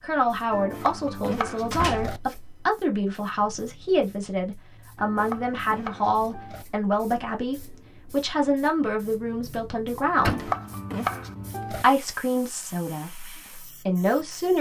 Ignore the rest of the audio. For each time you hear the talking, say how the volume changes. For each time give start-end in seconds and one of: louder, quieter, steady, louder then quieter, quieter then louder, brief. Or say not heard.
0.0-10.5 steady
11.7-14.5 brief.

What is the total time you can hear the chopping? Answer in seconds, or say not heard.
5 s.